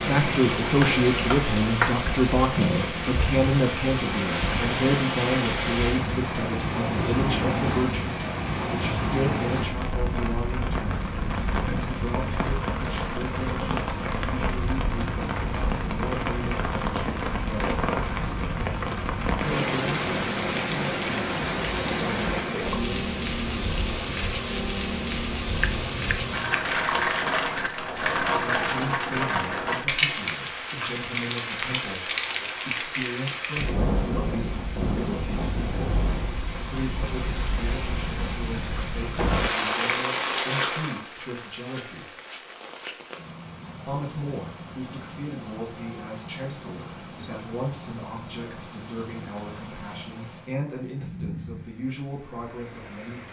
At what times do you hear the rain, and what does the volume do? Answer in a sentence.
You can hear the rain from 0.0 to 53.2 s, getting quieter.